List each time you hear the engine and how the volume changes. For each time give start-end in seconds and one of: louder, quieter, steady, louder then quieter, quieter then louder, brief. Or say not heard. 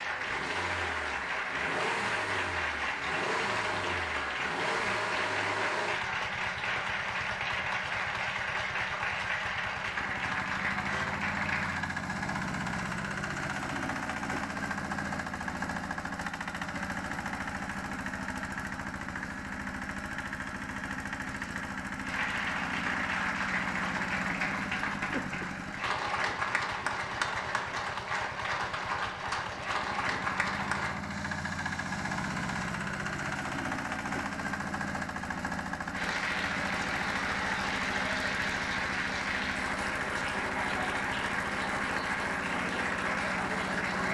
0.0-44.0 steady.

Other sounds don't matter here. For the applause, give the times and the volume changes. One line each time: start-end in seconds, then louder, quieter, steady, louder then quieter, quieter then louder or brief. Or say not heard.
0.0-11.8 steady
22.1-31.0 steady
35.9-44.0 steady.